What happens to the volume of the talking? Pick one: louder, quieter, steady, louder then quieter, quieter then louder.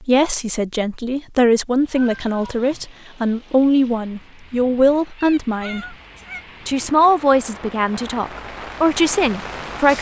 steady.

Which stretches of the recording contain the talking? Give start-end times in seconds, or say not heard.
0.0-6.0, 6.7-9.9.